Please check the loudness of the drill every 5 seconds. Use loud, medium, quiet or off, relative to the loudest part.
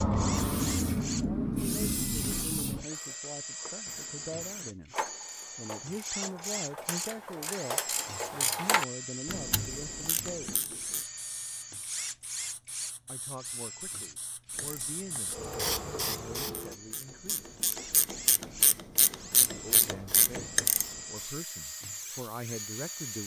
loud, loud, loud, medium, loud.